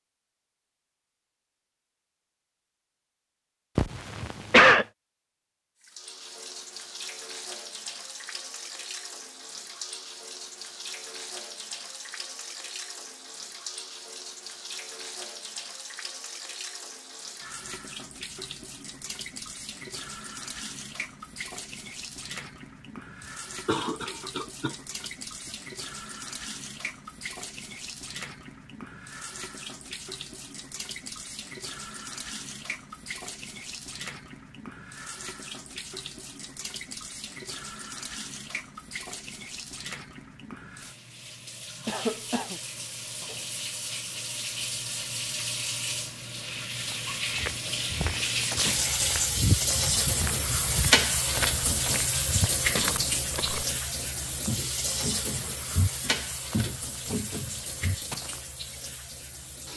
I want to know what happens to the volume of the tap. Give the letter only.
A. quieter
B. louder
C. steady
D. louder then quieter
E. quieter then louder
B.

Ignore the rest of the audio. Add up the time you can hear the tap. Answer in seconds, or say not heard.
54 s.